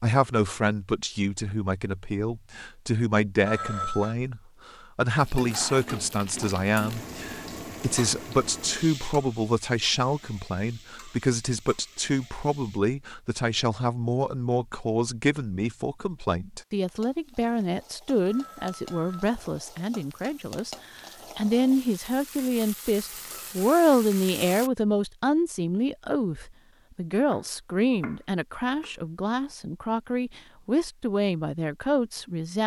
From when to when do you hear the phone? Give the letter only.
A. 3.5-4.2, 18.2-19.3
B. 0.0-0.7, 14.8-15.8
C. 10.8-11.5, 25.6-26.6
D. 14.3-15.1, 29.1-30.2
A.